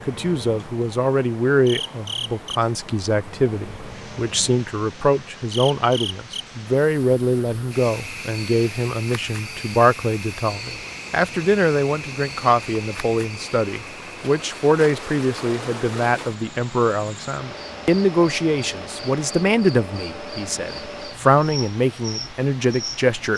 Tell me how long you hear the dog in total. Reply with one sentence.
The dog can't be heard in this clip.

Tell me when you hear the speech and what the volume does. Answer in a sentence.
You can hear the speech from 0.1 to 23.3 s, at a steady volume.